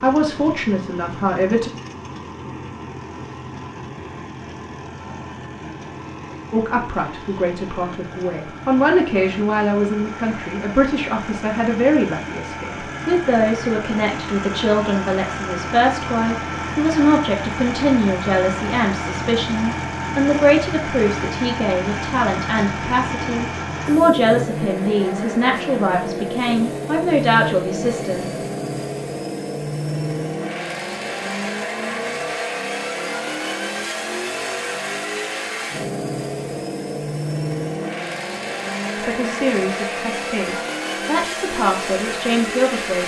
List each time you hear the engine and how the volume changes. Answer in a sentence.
You can hear the engine from 0.0 to 43.0 s, getting louder.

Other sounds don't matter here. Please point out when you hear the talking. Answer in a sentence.
The talking can be heard from 0.0 to 1.7 s, from 6.5 to 28.2 s and from 39.0 to 43.0 s.